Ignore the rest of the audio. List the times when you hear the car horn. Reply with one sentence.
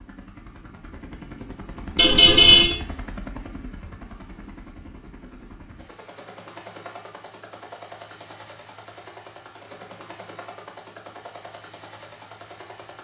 You can hear the car horn from 1.9 to 2.7 s.